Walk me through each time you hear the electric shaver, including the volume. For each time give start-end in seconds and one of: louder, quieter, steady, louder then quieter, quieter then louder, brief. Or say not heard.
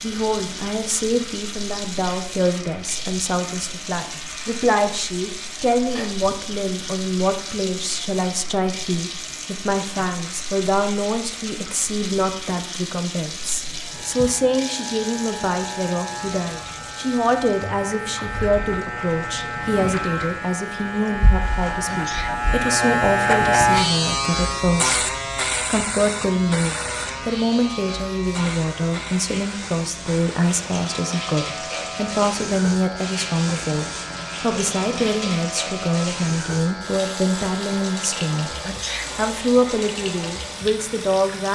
0.0-41.5 louder then quieter.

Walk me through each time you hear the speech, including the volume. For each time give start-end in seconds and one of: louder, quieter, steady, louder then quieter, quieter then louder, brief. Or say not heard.
0.0-38.5 steady
39.1-41.5 brief.